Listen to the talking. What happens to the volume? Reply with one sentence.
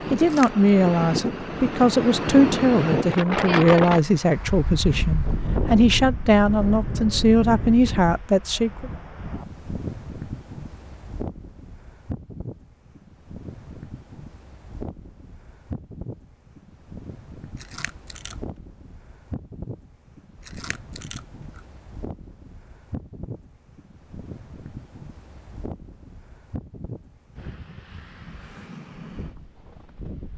The loudness of the talking stays about the same.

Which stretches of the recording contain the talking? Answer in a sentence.
You can hear the talking from 0.1 to 8.9 s.